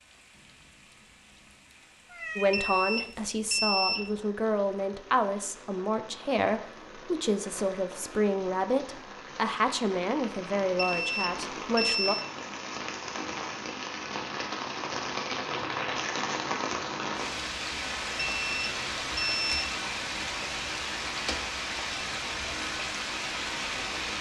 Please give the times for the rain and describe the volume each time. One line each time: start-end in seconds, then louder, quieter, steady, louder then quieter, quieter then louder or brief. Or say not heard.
0.0-24.1 louder.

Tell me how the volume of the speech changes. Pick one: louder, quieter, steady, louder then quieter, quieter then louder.
steady.